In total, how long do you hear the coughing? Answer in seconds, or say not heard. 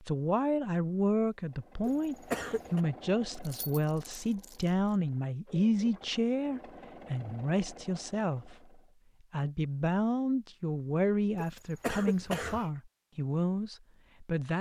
2 s.